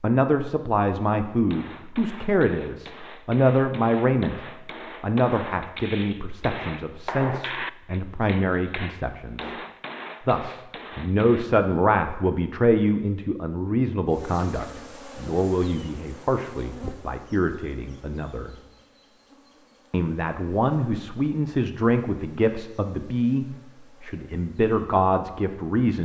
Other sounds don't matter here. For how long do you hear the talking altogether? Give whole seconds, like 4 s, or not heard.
24 s.